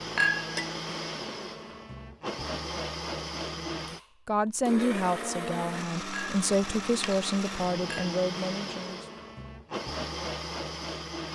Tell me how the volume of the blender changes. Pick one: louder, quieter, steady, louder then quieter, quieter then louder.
steady.